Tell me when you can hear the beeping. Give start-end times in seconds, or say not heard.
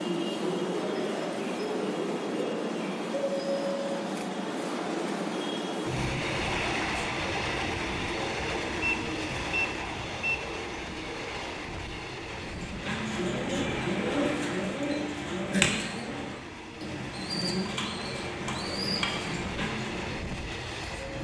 8.8-10.3.